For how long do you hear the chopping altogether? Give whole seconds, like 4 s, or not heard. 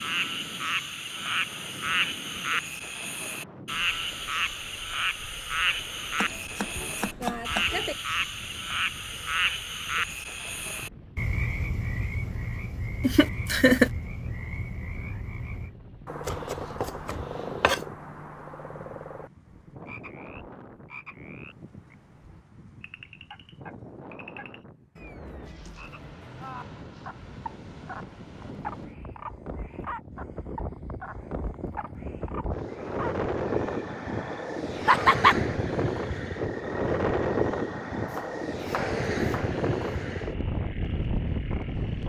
5 s.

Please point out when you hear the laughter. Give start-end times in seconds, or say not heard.
13.0-13.9, 34.9-35.4.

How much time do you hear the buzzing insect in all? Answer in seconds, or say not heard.
not heard.